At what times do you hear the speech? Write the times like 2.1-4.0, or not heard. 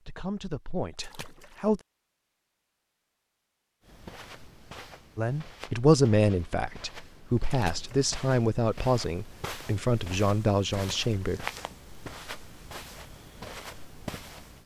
0.1-1.8, 5.2-11.4.